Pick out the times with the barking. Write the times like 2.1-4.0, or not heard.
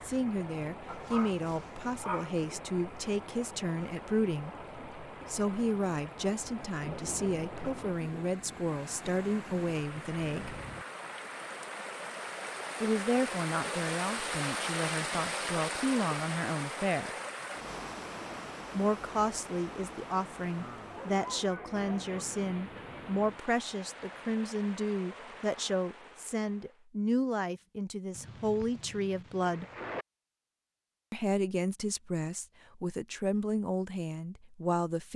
0.8-2.4, 20.9-22.2.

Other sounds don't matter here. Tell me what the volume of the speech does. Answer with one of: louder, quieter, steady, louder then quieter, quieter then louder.
steady.